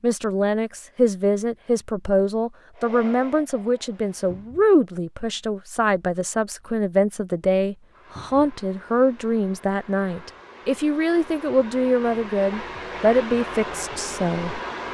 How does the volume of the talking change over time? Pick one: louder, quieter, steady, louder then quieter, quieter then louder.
steady.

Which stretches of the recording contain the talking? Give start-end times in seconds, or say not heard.
0.0-14.6.